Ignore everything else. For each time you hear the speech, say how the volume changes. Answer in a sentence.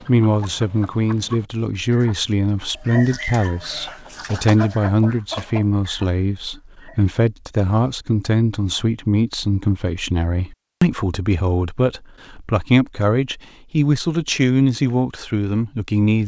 You can hear the speech from 0.1 to 16.2 s, at a steady volume.